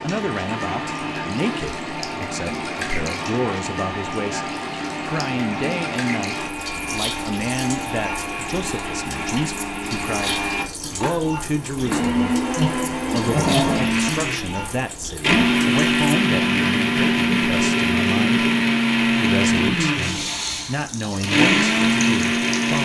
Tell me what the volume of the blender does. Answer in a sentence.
The volume of the blender goes up.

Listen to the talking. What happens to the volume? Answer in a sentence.
The loudness of the talking stays about the same.